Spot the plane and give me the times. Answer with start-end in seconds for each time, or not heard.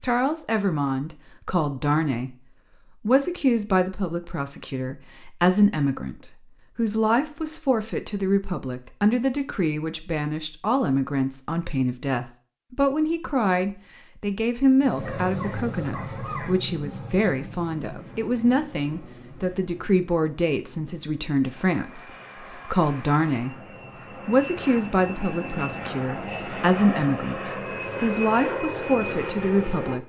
14.8-29.9.